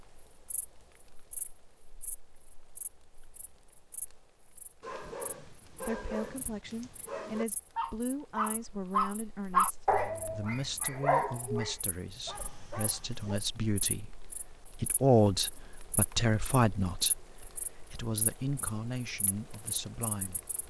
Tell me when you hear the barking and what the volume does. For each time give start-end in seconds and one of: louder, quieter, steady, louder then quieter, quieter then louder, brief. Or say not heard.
4.8-13.4 louder then quieter.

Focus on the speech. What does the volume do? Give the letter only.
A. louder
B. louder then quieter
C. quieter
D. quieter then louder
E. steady
B.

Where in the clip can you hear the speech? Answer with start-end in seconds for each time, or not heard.
5.8-20.4.